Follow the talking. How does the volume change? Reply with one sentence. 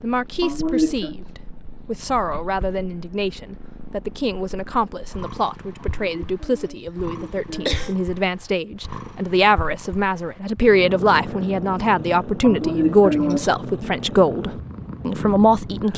The loudness of the talking goes up.